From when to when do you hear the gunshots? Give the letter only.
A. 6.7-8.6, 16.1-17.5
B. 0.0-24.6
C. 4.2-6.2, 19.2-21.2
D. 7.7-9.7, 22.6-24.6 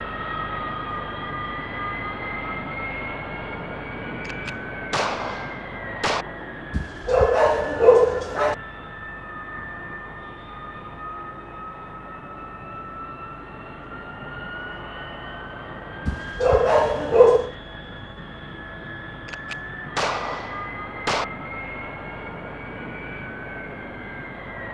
C.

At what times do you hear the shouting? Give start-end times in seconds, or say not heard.
not heard.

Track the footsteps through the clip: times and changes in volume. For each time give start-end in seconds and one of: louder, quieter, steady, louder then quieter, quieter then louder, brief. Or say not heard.
not heard.